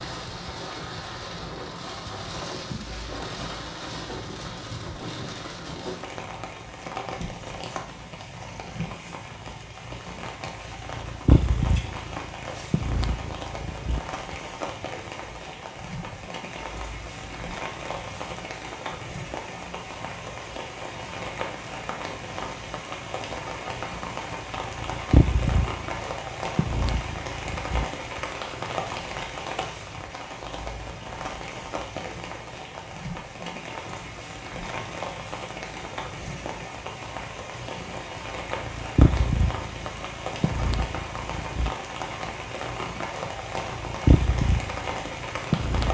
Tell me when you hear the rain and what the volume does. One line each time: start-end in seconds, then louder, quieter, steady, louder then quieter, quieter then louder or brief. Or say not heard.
0.0-45.9 steady.